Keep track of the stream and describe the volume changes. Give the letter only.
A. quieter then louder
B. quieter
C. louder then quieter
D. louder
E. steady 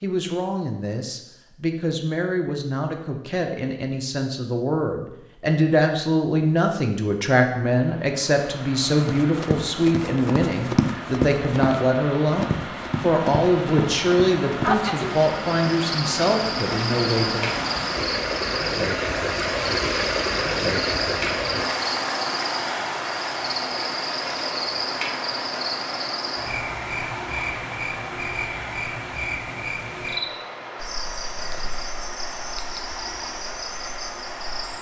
C.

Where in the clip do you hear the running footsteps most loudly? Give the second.
11 s.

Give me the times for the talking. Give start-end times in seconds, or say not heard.
0.0-17.6.